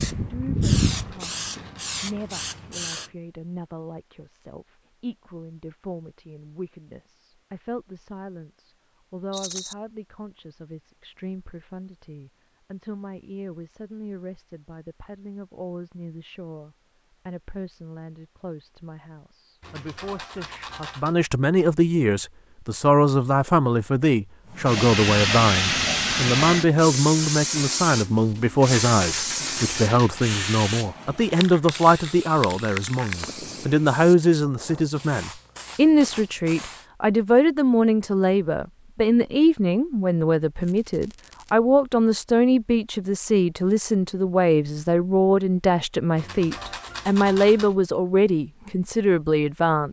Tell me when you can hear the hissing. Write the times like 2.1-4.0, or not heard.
0.0-3.1, 24.6-36.9.